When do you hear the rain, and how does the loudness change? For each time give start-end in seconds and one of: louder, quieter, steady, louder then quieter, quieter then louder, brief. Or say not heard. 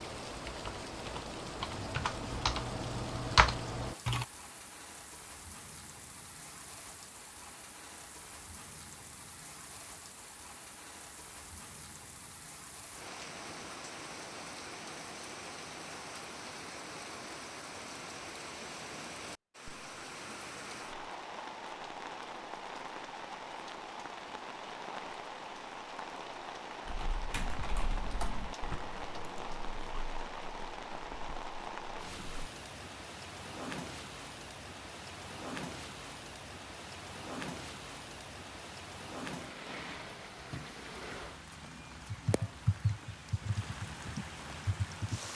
0.0-45.3 steady.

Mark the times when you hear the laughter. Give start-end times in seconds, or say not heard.
not heard.